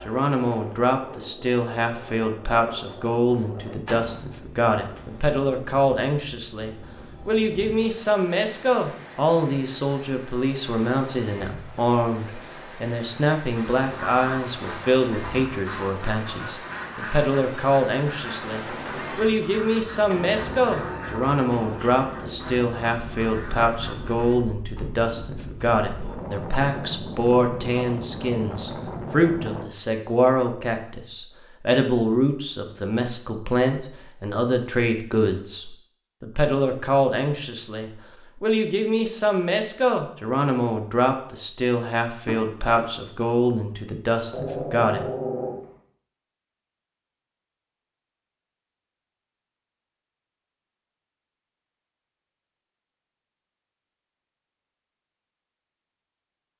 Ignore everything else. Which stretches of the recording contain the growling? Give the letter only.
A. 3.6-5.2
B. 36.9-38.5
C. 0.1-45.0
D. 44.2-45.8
D.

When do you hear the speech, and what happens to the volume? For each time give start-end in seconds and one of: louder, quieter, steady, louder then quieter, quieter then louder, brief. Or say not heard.
0.1-45.0 steady.